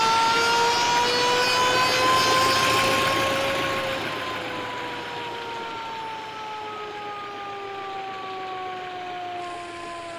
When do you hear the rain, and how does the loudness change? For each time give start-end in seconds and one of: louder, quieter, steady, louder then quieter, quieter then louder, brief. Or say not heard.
0.0-10.1 quieter.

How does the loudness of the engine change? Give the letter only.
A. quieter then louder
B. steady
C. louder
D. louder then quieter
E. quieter
E.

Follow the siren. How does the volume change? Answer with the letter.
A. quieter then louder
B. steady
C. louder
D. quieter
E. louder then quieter
D.